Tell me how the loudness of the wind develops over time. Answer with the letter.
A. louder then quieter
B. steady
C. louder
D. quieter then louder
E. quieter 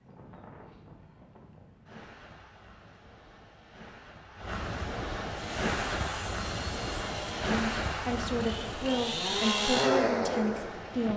A.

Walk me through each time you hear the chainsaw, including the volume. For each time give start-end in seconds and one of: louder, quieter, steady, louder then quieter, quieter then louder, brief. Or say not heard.
5.2-11.1 louder.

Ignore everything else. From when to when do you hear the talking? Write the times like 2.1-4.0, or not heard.
7.5-11.1.